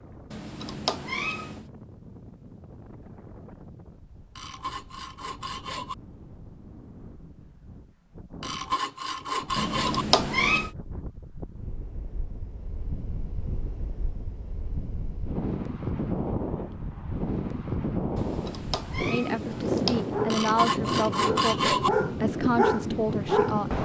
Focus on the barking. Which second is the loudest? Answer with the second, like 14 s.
23 s.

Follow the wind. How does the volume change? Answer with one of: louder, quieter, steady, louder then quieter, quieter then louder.
louder.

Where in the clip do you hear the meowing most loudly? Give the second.
10 s.